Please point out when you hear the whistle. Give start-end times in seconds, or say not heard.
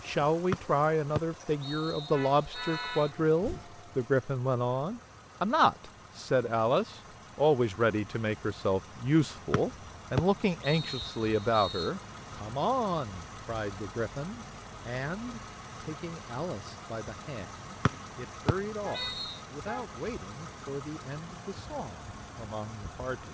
0.5-3.1, 9.5-11.9, 17.9-19.4.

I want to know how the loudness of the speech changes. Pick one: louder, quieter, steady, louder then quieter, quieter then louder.
quieter.